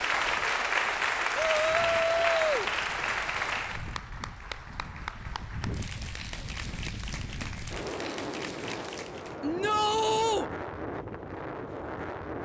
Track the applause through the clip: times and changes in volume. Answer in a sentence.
You can hear the applause from 0.0 to 9.4 s, getting quieter.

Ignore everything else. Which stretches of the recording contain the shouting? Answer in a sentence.
The shouting can be heard from 1.4 to 2.7 s and from 9.4 to 10.4 s.